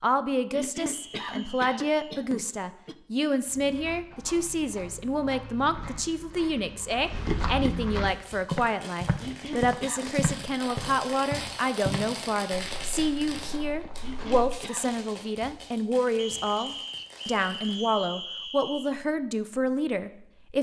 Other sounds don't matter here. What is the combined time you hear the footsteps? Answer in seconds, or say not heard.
11 s.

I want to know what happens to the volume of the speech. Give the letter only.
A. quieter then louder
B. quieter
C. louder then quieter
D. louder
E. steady
E.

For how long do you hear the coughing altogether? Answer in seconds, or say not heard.
4 s.